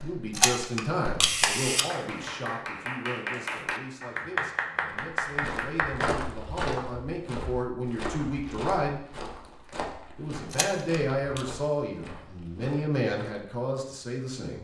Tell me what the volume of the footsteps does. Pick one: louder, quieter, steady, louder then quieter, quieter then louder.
quieter.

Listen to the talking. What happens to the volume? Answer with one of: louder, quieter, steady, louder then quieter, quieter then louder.
quieter then louder.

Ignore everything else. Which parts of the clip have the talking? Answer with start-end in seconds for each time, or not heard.
0.0-9.0, 10.2-14.5.